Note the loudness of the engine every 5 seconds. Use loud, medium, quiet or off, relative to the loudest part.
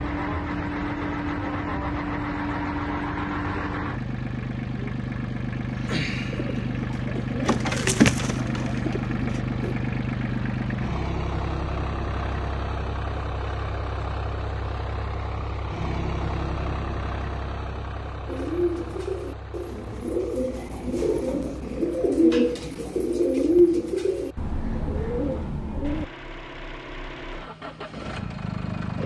loud, loud, loud, medium, quiet, medium.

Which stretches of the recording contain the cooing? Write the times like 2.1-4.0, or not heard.
5.7-9.8, 18.2-26.1.